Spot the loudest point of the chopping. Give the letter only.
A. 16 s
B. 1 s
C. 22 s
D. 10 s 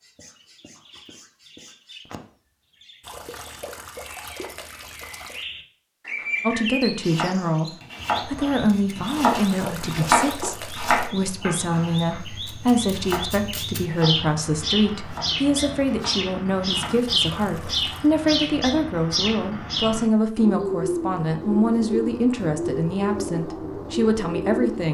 D.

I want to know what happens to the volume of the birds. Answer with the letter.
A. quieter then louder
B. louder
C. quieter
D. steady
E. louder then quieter
B.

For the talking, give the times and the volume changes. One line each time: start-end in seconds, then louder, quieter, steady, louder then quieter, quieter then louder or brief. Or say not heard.
6.4-24.9 steady.